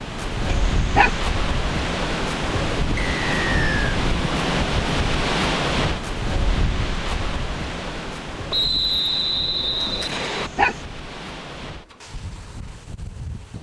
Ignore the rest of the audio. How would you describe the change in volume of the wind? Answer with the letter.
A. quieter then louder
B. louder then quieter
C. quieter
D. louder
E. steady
C.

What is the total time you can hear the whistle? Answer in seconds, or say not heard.
3 s.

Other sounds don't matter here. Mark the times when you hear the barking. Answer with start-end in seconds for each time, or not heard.
0.5-1.2, 10.1-10.8.